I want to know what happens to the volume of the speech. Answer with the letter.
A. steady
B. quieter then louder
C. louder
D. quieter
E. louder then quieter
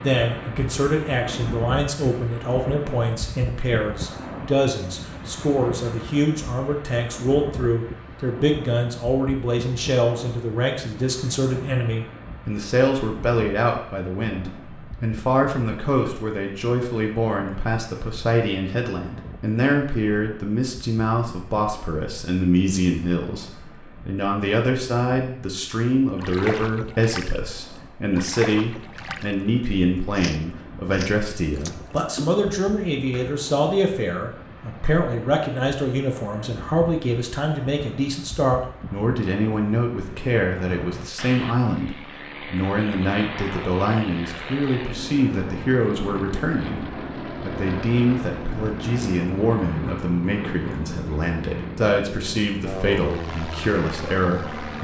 A.